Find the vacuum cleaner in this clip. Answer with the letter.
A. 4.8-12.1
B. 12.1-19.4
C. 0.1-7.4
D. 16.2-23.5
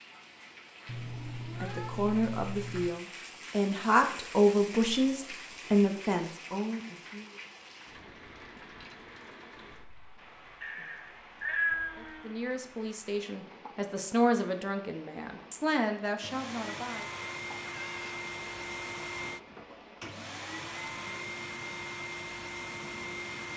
D.